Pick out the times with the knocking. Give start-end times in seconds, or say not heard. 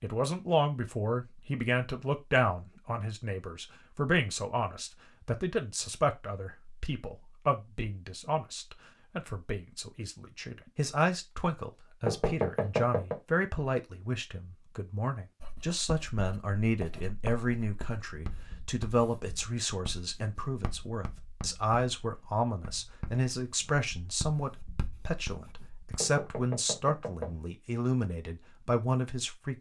12.1-13.2, 26.0-27.4.